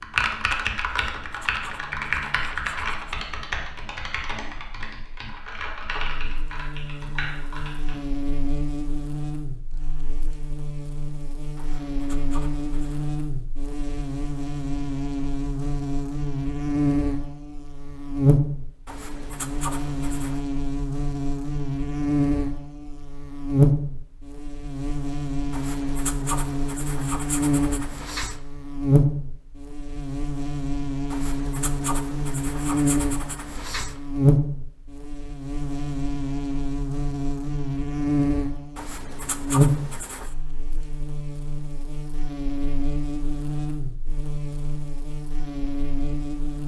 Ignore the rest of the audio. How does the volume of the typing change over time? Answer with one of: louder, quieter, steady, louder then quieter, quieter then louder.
quieter.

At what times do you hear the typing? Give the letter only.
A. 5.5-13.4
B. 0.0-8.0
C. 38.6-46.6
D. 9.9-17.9
B.